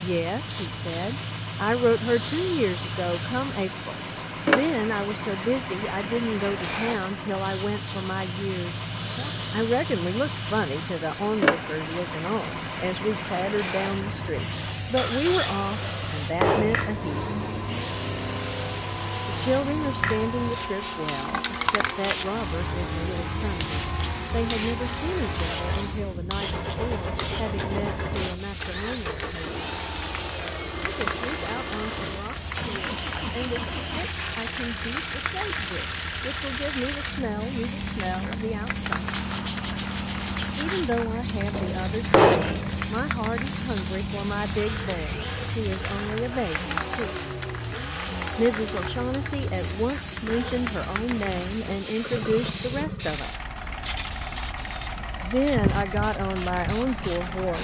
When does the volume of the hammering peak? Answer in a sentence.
The volume of the hammering peaks at 42 seconds.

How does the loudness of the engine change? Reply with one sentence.
The loudness of the engine stays about the same.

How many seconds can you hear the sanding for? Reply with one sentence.
The sanding can be heard for 7 seconds in total.